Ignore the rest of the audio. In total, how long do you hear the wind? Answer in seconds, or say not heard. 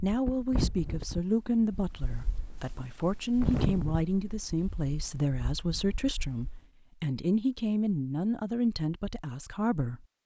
7 s.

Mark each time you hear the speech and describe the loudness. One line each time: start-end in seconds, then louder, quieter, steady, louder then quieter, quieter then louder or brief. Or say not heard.
0.0-10.1 steady.